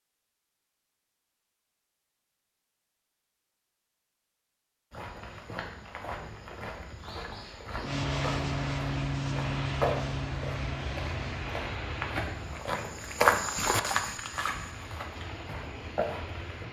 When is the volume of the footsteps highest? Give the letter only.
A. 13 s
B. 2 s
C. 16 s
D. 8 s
A.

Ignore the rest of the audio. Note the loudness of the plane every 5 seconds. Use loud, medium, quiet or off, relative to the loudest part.
off, loud, medium, quiet.